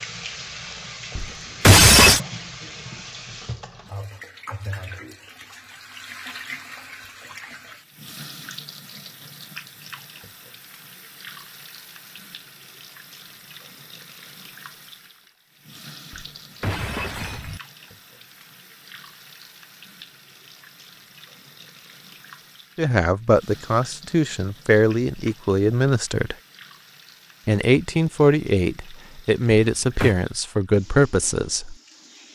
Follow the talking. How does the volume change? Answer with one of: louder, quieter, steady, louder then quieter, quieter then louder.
steady.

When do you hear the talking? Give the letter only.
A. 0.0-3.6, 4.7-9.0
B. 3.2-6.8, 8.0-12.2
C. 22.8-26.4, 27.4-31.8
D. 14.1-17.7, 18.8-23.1
C.